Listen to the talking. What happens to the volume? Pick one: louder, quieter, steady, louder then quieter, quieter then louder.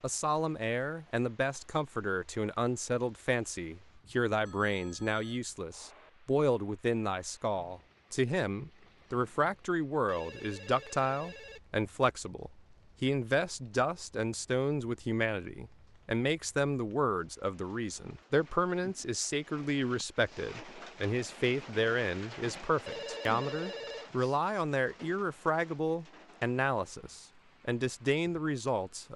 steady.